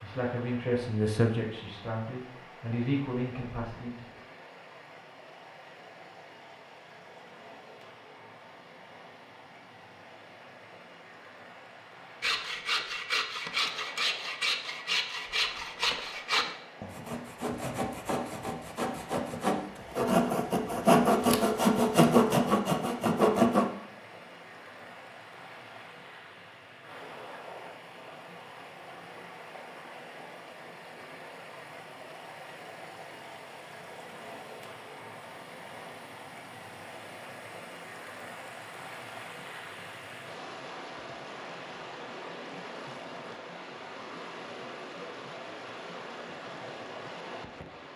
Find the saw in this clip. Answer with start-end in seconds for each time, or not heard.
12.2-23.7.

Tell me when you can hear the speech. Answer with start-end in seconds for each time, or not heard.
0.0-4.0.